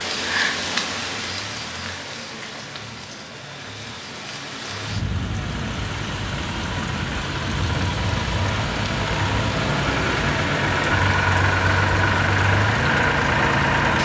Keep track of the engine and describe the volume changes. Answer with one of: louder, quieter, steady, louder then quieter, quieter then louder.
louder.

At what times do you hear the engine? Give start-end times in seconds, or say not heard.
0.0-13.9.